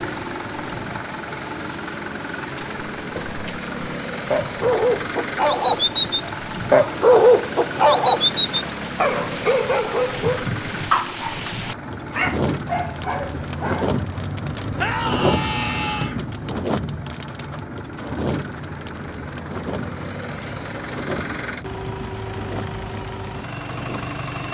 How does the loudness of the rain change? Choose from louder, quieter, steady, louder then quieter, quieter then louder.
louder then quieter.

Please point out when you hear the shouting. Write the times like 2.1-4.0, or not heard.
14.8-16.1.